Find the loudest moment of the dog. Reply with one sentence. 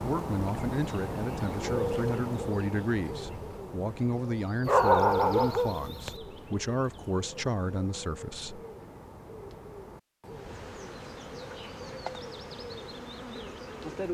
The loudest moment of the dog is at 5 seconds.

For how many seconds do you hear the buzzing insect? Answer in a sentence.
You can hear the buzzing insect for 4 seconds altogether.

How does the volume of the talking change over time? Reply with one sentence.
The volume of the talking stays about the same.